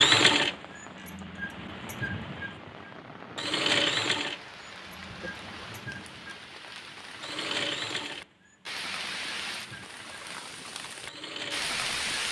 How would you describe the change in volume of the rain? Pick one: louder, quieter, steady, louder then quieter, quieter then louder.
louder.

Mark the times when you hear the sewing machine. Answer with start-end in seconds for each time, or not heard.
0.0-12.2.